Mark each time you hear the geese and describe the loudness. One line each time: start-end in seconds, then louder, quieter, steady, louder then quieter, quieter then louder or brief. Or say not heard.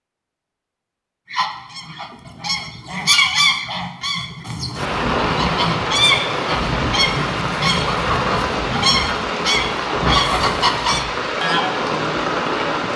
1.3-11.8 quieter then louder.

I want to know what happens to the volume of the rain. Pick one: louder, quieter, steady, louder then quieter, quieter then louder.
steady.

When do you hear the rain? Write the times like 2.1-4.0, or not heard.
4.7-12.9.